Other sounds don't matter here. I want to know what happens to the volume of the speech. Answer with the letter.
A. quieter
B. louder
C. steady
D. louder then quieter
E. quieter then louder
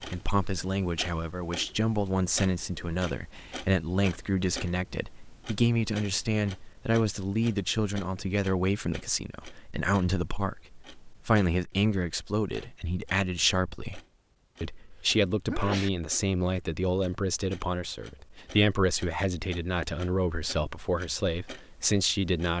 C.